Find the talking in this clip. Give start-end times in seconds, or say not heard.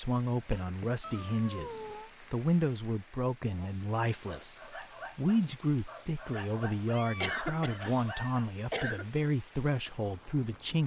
0.0-10.8.